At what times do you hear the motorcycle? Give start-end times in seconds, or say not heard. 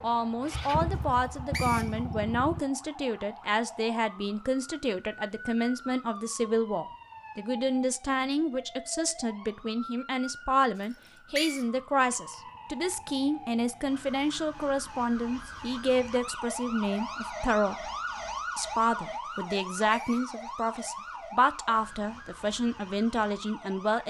0.0-2.6.